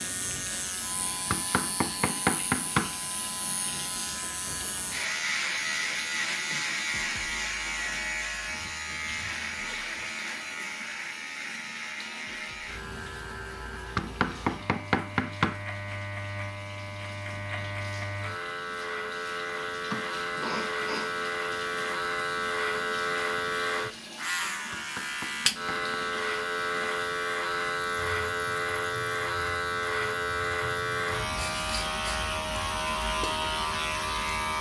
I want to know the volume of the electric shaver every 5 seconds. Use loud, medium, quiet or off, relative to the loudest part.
medium, loud, medium, medium, loud, loud, loud.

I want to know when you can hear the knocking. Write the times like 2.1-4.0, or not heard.
1.3-3.0, 13.9-15.6, 24.7-25.9.